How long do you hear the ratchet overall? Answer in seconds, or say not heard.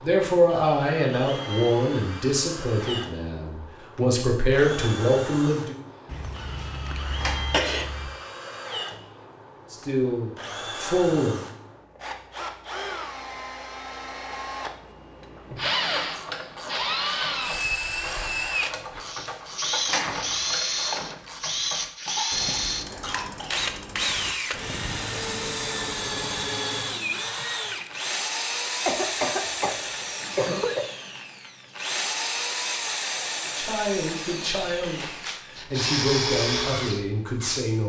11 s.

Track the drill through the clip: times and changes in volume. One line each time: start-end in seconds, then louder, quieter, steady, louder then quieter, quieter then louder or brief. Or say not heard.
0.0-37.8 louder.